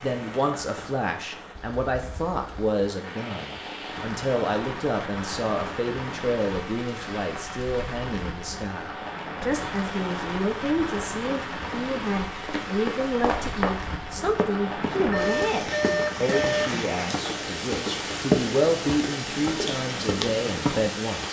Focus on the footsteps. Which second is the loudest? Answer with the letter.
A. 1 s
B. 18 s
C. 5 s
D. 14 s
B.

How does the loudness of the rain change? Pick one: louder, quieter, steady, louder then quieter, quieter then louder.
louder.